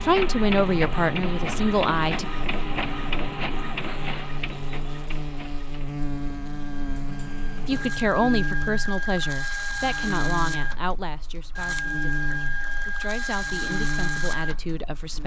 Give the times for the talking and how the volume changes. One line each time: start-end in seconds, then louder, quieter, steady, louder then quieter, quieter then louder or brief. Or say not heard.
0.0-2.2 brief
7.7-15.2 quieter.